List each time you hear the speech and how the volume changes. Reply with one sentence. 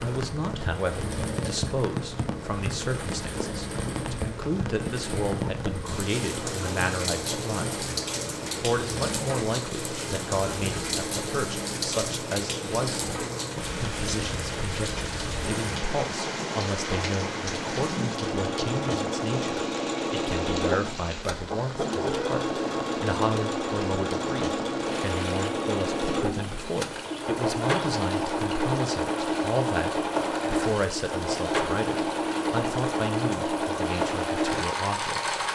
The speech can be heard from 0.0 to 7.8 s, at a steady volume; and from 8.6 to 35.4 s, at a steady volume.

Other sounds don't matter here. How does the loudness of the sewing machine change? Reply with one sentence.
The loudness of the sewing machine goes up.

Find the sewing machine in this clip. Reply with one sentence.
You can hear the sewing machine from 0.1 to 35.5 s.